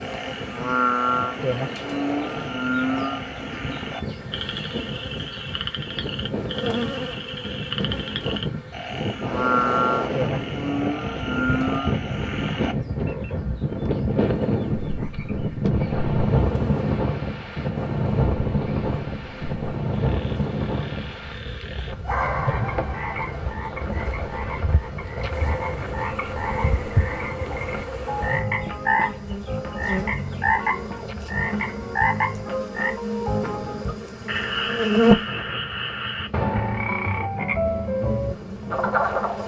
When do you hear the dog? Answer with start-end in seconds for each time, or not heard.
22.1-23.4.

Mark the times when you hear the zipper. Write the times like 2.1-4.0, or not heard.
not heard.